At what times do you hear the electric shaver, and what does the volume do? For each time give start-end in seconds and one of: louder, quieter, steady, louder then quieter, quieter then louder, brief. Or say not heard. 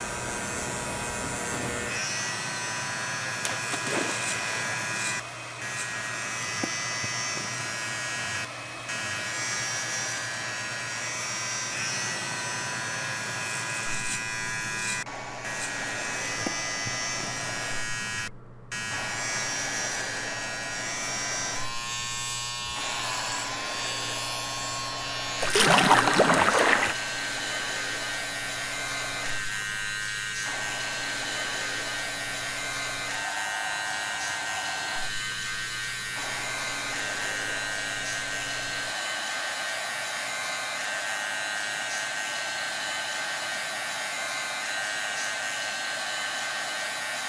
0.0-47.2 steady.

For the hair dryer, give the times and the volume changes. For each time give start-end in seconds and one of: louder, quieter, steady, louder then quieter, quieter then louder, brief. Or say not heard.
0.0-47.2 steady.